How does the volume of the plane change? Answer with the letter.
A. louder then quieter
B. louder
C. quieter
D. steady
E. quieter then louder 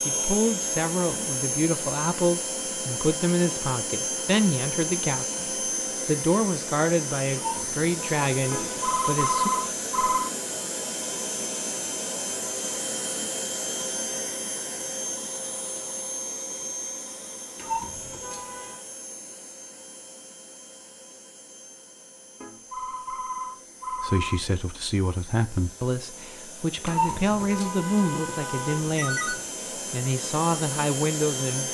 E.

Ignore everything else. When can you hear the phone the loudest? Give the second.
9 s.